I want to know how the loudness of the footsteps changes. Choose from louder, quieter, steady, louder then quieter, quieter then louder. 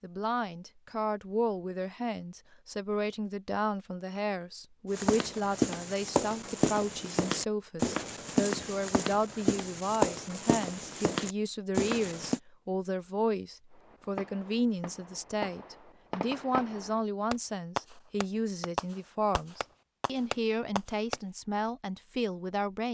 steady.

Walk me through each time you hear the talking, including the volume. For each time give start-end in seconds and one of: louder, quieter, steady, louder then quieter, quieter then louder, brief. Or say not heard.
0.0-22.8 steady.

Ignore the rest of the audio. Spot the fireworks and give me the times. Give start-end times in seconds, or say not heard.
13.9-21.2.